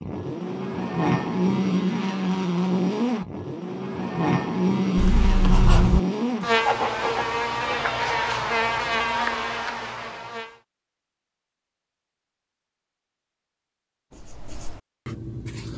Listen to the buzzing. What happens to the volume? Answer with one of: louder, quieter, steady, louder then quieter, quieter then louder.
steady.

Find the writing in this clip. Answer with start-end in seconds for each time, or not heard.
5.0-7.8, 14.1-15.7.